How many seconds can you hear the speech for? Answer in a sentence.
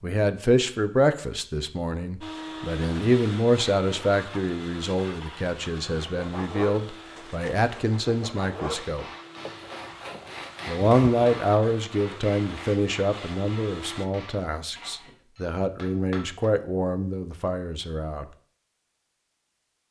You can hear the speech for 17 seconds altogether.